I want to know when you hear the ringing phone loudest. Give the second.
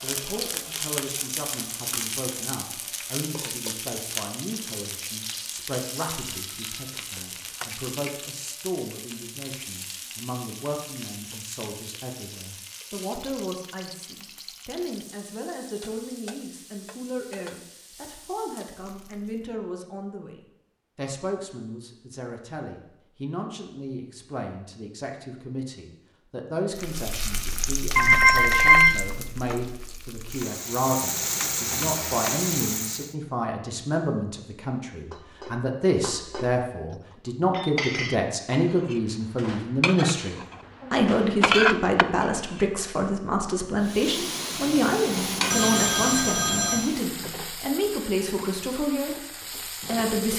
29 s.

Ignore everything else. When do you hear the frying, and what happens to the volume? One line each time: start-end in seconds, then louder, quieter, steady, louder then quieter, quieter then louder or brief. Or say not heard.
0.0-19.6 quieter
26.7-33.1 quieter then louder
43.8-50.3 quieter.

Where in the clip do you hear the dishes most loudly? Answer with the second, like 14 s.
42 s.